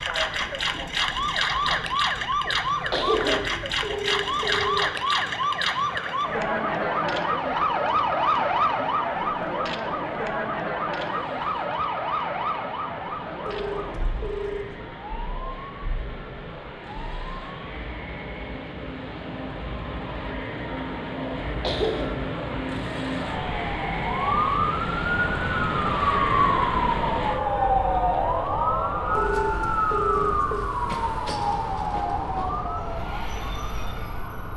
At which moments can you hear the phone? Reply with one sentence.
You can hear the phone from 3.2 to 5.0 s, from 13.4 to 14.8 s and from 29.1 to 30.7 s.